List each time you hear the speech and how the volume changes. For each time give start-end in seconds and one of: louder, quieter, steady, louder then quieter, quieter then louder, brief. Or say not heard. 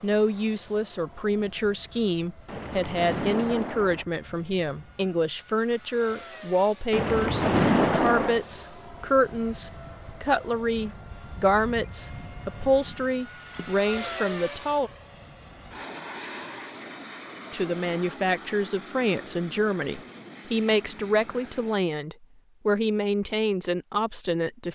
0.0-14.9 steady
17.5-24.7 steady.